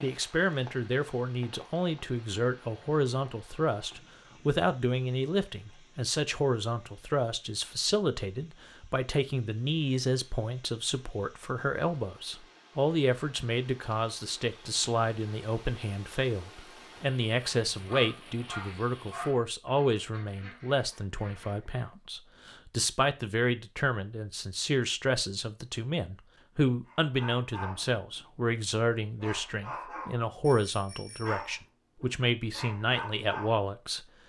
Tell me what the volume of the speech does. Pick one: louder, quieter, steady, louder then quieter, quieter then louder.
steady.